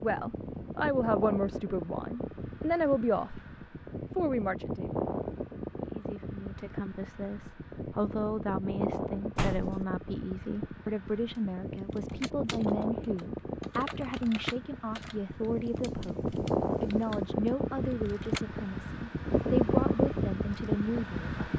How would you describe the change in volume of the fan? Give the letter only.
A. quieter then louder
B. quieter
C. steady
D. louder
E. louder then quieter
D.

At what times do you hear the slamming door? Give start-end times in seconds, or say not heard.
9.3-9.8.